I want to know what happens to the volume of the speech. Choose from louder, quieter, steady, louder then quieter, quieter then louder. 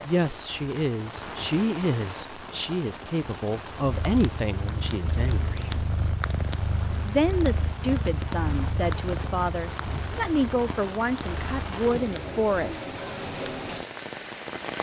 steady.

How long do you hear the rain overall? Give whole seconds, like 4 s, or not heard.
15 s.